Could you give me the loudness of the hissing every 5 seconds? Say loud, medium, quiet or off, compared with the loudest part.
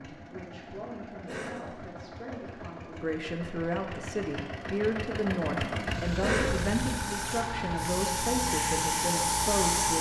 off, loud.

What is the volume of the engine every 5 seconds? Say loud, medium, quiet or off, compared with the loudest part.
medium, loud.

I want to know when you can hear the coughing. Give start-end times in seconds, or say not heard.
1.2-1.7, 6.2-6.7.